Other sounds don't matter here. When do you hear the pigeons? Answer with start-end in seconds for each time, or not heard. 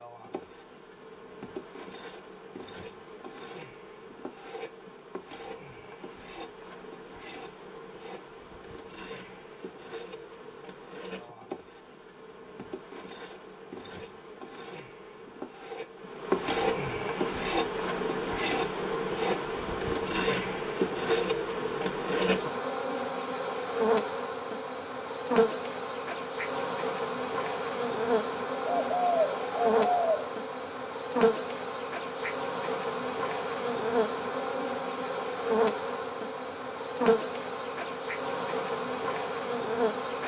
28.6-30.2.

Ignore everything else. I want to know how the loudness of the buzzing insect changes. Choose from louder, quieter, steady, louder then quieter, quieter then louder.
louder.